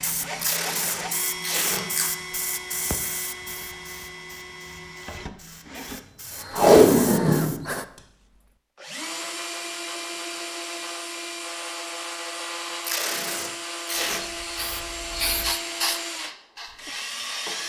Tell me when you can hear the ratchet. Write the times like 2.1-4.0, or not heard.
not heard.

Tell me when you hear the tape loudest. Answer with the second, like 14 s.
7 s.